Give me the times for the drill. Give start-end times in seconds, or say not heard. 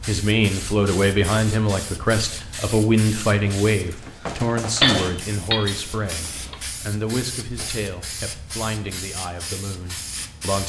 not heard.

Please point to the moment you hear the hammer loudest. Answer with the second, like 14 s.
5 s.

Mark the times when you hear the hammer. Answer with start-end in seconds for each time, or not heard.
4.8-6.6.